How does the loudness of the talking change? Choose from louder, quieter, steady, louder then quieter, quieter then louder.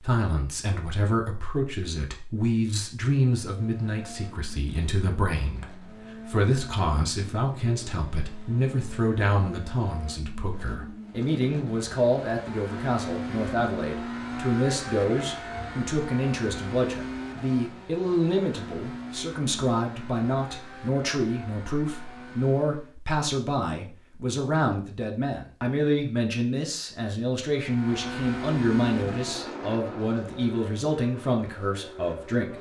steady.